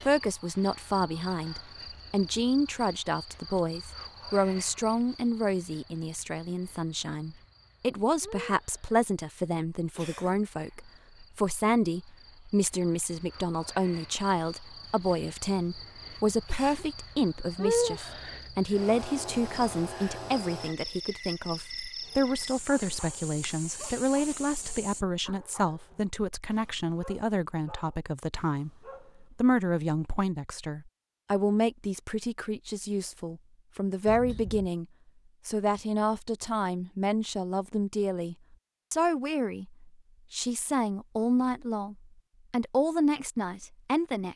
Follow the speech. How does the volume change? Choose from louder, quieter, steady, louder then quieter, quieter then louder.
steady.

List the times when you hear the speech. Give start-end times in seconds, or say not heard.
0.0-34.9, 35.5-44.3.